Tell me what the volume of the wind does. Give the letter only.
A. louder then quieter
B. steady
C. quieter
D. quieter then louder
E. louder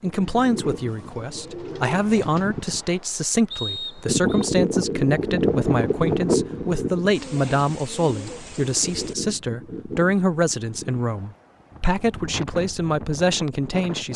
A.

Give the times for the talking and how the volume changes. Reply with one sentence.
You can hear the talking from 0.0 to 14.1 s, at a steady volume.